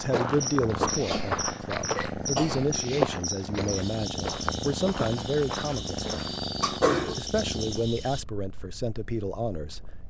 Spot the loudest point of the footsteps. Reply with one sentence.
The loudest moment of the footsteps is at 3 seconds.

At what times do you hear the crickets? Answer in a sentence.
The crickets can be heard from 0.0 to 8.2 s.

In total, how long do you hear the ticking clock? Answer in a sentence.
The ticking clock can't be heard in this clip.